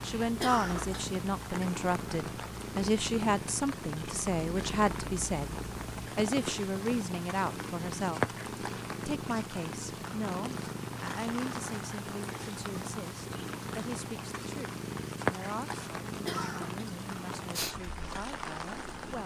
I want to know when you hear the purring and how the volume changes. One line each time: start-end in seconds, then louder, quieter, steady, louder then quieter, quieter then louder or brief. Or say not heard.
0.0-19.2 steady.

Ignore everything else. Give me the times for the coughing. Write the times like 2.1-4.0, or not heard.
0.4-1.1, 16.2-16.9.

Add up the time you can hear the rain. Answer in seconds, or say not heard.
19 s.